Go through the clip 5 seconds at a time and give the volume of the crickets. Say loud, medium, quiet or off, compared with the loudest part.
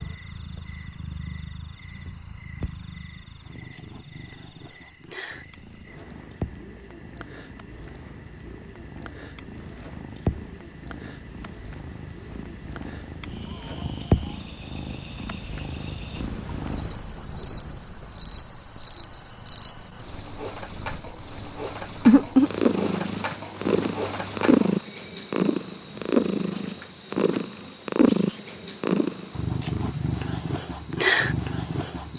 quiet, quiet, quiet, medium, loud, loud, medium.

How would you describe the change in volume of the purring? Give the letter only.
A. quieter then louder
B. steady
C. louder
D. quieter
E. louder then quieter
C.